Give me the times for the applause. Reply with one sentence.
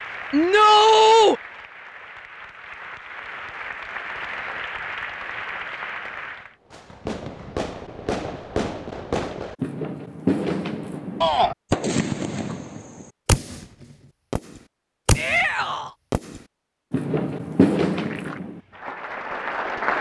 You can hear the applause from 0.0 to 6.5 s and from 17.9 to 19.9 s.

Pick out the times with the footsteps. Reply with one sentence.
You can't hear the footsteps here.